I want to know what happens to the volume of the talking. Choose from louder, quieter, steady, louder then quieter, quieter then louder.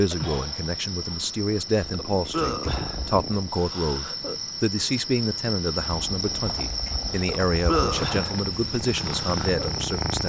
steady.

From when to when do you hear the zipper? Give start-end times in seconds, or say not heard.
not heard.